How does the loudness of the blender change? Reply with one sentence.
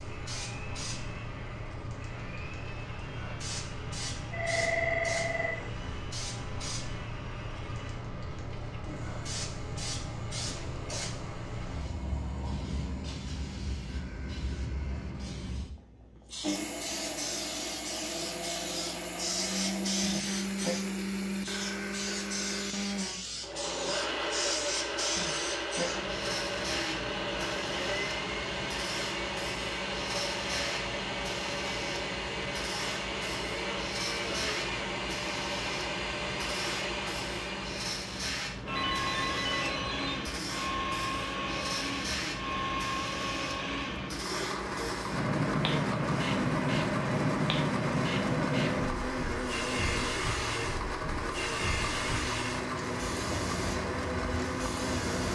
The volume of the blender goes up.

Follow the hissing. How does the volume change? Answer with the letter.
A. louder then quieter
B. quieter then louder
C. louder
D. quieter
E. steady
C.